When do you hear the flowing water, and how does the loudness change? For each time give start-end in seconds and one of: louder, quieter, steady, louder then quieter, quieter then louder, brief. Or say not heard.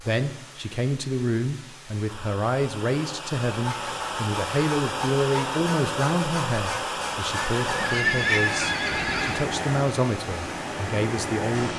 0.0-11.7 louder.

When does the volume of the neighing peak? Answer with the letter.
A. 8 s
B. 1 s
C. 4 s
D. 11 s
A.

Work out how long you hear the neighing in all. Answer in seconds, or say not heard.
2 s.